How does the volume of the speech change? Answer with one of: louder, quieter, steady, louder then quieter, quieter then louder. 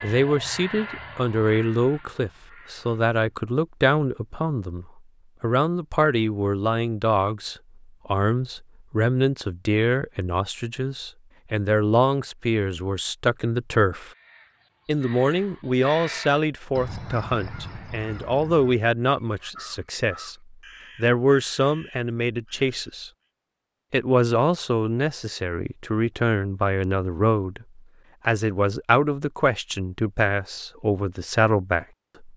steady.